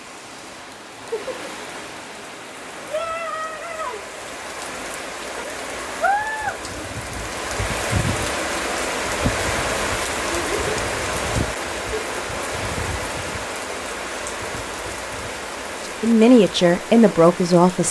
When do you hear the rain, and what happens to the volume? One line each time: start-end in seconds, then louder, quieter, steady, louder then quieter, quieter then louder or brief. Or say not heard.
0.0-17.8 louder then quieter.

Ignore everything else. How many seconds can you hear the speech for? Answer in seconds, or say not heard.
2 s.